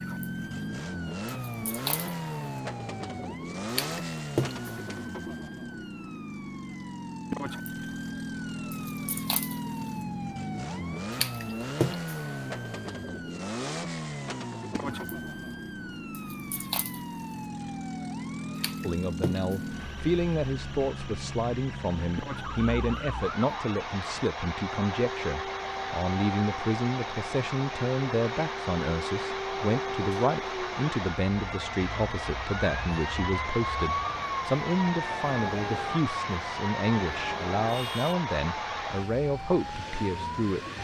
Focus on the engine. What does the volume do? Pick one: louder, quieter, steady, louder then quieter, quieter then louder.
steady.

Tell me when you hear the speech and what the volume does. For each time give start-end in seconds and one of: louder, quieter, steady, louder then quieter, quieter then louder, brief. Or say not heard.
18.8-40.6 steady.